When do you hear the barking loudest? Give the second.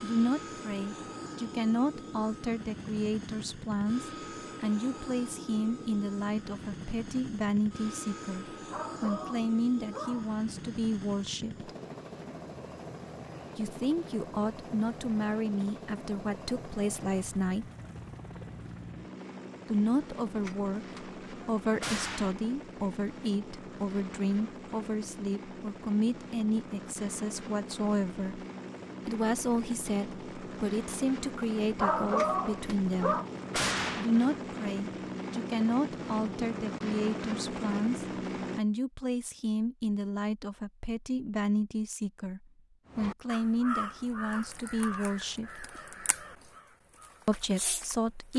32 s.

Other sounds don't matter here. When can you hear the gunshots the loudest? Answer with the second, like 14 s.
34 s.